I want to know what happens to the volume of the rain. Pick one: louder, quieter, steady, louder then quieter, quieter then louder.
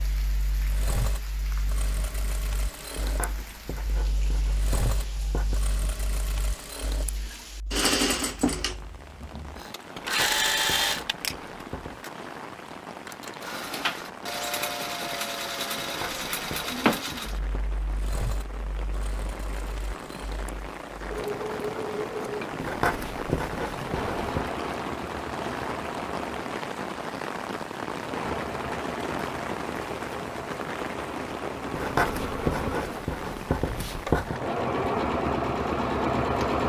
louder.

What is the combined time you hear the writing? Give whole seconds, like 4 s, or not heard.
11 s.